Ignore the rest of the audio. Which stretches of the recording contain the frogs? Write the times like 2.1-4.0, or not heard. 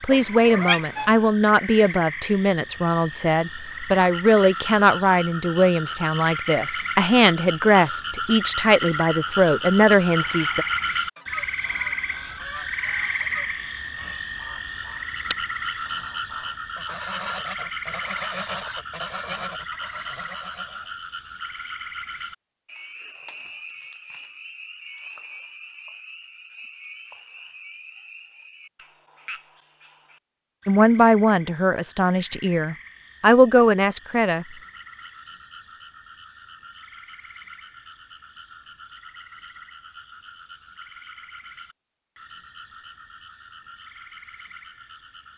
0.0-45.3.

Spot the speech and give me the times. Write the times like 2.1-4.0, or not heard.
0.0-10.7, 30.6-34.5.